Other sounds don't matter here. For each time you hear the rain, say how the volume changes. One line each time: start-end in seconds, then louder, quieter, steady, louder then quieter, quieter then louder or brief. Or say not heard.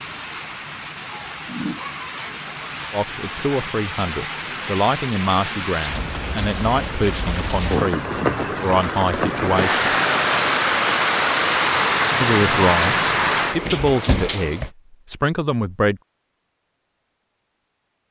0.0-14.7 louder.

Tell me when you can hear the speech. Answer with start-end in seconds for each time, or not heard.
2.9-9.9, 12.2-16.0.